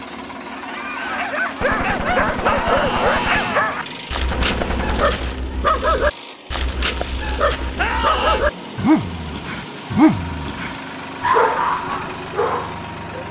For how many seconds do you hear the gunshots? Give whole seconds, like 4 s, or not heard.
4 s.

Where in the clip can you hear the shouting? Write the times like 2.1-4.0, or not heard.
2.4-3.6, 7.8-8.4.